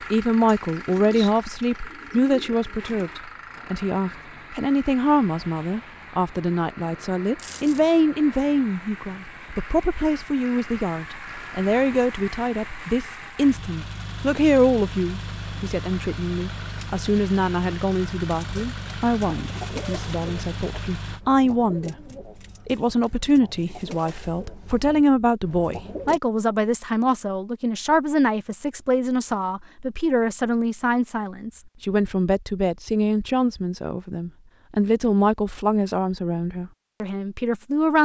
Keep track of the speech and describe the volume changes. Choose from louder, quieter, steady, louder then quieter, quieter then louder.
steady.